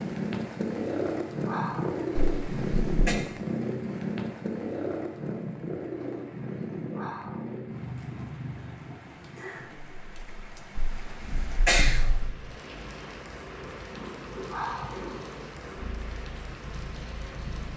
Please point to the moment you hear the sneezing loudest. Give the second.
12 s.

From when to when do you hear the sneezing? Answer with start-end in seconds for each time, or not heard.
2.4-3.1, 10.8-12.3.